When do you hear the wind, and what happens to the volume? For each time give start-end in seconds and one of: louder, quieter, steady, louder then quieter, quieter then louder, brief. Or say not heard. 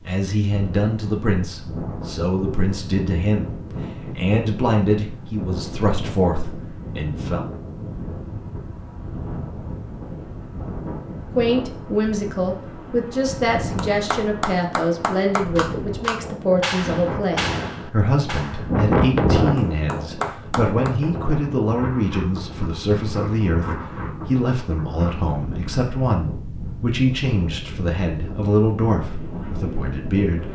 0.0-30.5 louder then quieter.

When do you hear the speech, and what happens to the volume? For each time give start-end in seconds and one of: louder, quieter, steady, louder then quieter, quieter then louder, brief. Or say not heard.
0.1-7.5 steady
11.3-30.5 steady.